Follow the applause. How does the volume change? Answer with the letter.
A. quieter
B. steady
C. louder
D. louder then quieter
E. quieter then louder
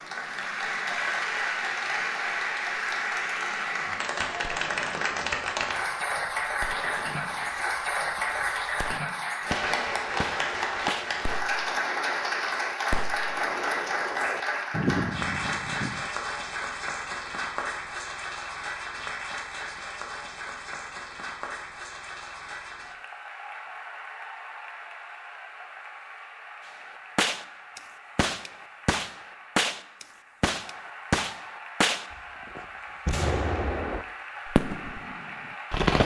A.